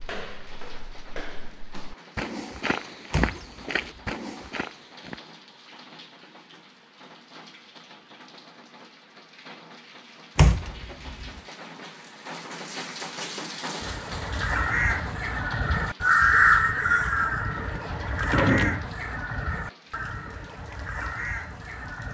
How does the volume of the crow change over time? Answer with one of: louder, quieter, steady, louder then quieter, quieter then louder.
louder then quieter.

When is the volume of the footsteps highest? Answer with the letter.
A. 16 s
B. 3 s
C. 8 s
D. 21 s
B.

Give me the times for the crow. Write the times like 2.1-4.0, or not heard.
13.8-22.0.